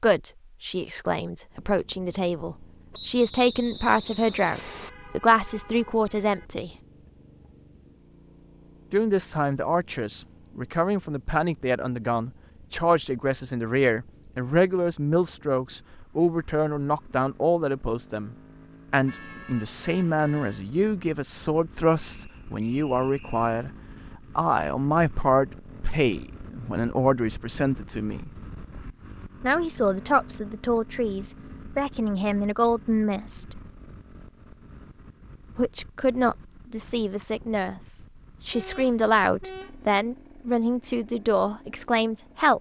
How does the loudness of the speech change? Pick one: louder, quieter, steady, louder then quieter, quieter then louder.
steady.